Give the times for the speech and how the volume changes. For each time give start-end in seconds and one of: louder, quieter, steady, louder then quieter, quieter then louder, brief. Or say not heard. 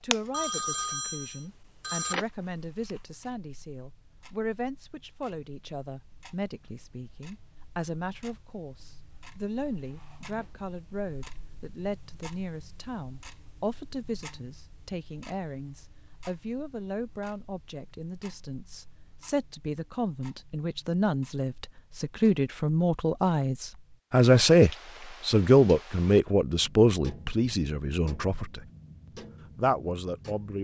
0.0-28.6 louder
29.6-30.5 brief.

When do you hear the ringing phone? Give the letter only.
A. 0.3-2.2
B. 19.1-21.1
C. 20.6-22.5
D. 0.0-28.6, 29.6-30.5
A.